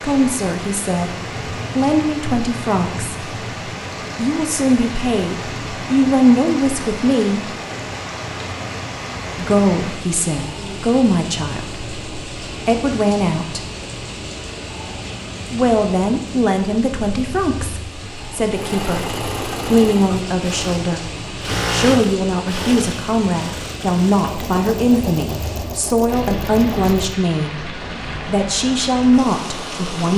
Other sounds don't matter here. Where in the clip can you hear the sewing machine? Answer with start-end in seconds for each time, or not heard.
18.0-27.1.